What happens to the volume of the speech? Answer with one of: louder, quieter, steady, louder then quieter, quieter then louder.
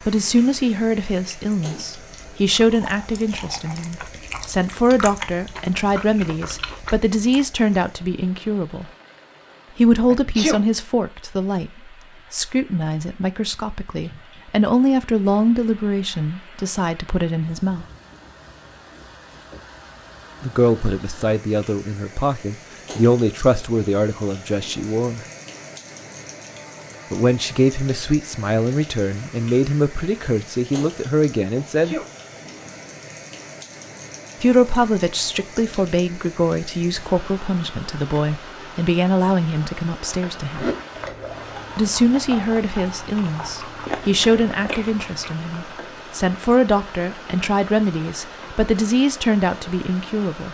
steady.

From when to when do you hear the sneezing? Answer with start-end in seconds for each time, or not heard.
10.1-10.6, 31.6-32.0.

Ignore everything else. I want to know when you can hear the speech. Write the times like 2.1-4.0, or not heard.
0.1-8.9, 9.8-17.9, 20.4-25.2, 27.1-31.9, 34.4-40.7, 41.8-50.4.